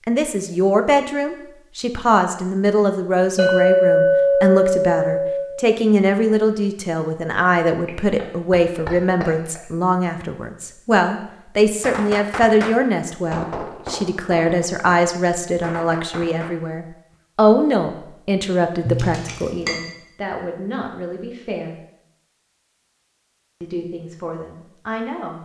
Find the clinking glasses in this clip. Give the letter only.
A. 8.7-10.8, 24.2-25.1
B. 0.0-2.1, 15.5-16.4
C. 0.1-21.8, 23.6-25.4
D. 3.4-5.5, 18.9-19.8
D.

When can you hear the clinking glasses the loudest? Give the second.
4 s.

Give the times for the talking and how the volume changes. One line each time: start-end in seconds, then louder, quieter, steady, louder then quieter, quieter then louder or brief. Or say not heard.
0.1-21.8 steady
23.6-25.4 brief.